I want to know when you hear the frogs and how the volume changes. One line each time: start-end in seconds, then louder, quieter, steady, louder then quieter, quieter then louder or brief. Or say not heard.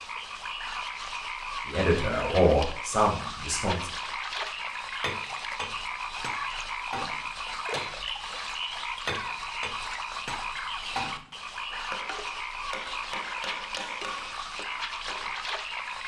0.0-16.0 steady.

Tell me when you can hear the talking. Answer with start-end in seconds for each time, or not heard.
1.6-3.9.